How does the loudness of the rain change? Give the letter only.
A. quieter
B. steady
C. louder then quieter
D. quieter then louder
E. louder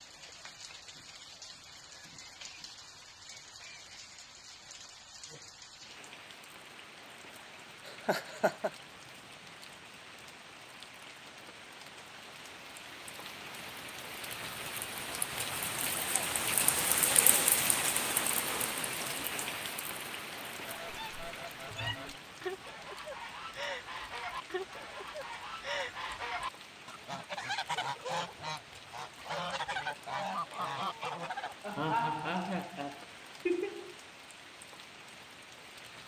C.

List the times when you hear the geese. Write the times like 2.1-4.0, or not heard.
20.6-31.6.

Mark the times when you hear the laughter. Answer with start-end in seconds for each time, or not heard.
7.8-8.7, 31.6-34.0.